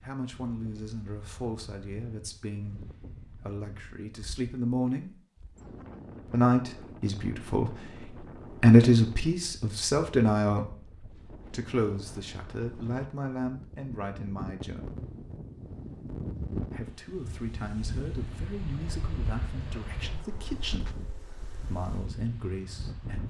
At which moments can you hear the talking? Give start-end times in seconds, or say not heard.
0.0-5.2, 6.3-14.9, 16.7-20.9, 21.6-23.2.